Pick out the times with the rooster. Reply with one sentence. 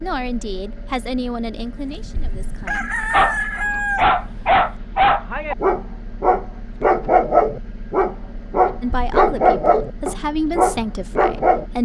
The rooster can be heard from 1.8 to 4.7 s.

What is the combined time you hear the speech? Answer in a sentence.
The speech can be heard for 6 seconds in total.